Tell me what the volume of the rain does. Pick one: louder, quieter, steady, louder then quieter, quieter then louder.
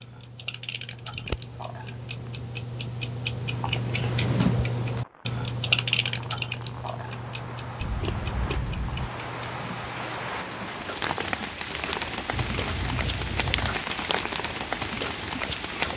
louder.